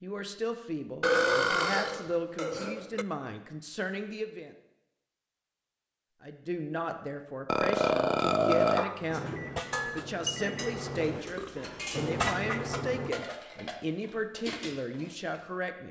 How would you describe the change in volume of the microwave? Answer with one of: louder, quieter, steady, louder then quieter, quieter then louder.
louder.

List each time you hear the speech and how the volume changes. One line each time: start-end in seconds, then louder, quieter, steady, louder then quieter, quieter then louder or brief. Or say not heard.
0.0-4.5 steady
6.2-15.8 steady.